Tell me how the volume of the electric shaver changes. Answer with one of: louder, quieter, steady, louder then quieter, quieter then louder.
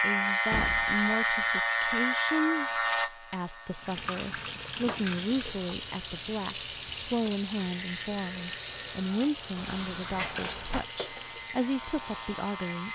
quieter then louder.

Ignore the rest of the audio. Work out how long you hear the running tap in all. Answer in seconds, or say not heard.
9 s.